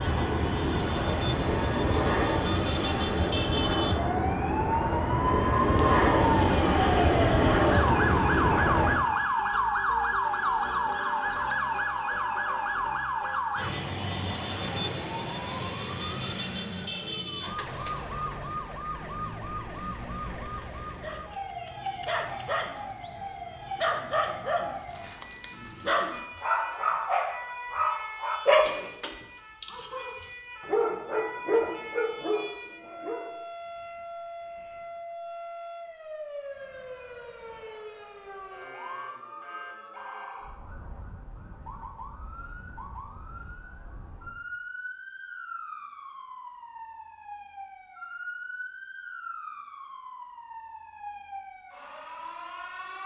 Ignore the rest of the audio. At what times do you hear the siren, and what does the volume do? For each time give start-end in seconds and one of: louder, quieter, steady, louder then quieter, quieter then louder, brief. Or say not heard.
0.0-53.0 quieter.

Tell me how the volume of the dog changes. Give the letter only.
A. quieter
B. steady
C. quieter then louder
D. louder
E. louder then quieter
D.